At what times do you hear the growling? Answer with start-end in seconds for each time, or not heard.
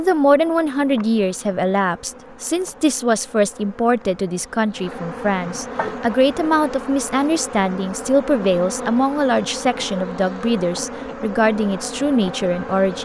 5.8-6.5.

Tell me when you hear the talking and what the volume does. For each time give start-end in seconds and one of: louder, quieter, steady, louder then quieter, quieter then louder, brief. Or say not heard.
0.0-12.9 steady.